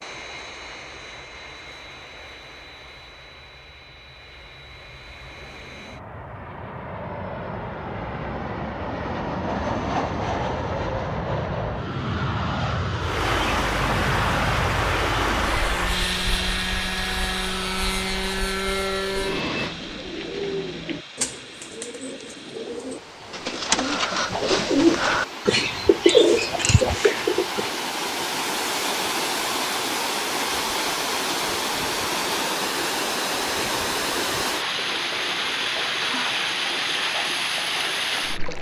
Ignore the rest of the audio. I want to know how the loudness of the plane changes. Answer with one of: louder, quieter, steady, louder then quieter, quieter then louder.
louder.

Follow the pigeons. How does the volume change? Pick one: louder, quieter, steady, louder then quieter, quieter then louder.
louder.